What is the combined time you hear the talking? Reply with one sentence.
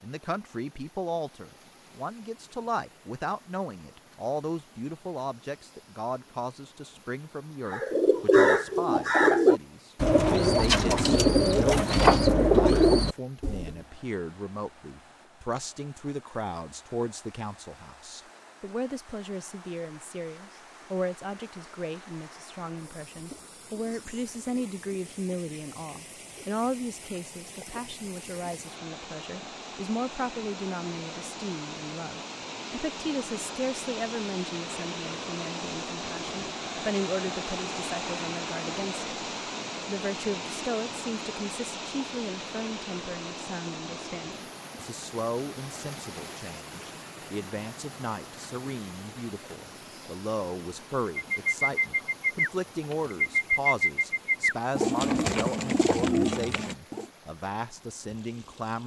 You can hear the talking for 58 seconds altogether.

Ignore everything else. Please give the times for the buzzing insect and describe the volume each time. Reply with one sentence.
The buzzing insect can't be heard in this clip.